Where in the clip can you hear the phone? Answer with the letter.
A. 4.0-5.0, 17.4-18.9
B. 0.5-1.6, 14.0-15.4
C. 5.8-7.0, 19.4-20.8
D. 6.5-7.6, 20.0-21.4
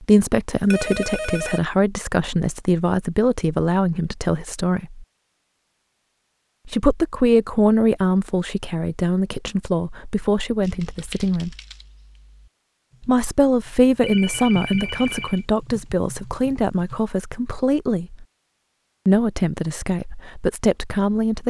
B.